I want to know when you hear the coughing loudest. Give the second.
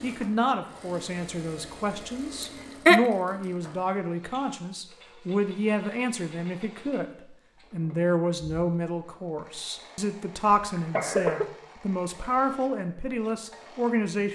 3 s.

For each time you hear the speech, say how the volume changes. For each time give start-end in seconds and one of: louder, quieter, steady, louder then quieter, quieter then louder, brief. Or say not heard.
0.0-14.3 steady.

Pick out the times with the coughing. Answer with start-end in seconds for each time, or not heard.
2.4-3.0, 10.8-11.5.